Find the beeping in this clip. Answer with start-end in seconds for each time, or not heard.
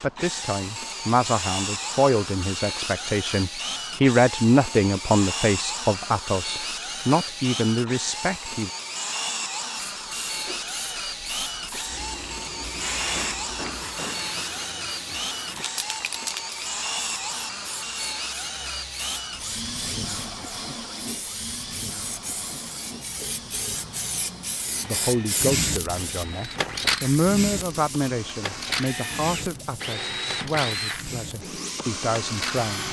not heard.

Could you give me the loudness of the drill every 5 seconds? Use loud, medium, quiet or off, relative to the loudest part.
loud, loud, loud, loud, medium, medium, loud.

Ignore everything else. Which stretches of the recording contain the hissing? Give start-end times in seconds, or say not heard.
9.7-32.6.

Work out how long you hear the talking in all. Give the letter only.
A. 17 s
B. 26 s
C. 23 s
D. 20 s
A.